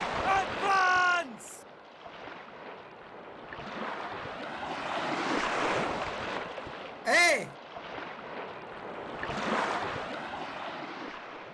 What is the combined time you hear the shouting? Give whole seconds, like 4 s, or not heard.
2 s.